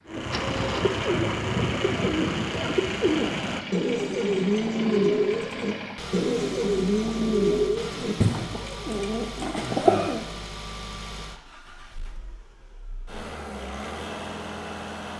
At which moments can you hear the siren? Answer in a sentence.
The siren can't be heard in this clip.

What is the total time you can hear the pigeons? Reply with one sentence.
The pigeons can be heard for 10 seconds in total.